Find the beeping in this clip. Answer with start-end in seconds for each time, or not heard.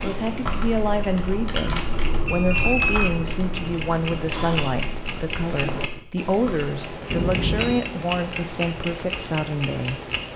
2.2-3.0, 7.1-7.8.